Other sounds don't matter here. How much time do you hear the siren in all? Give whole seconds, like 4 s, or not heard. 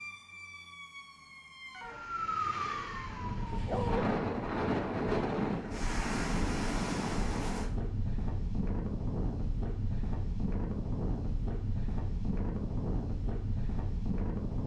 4 s.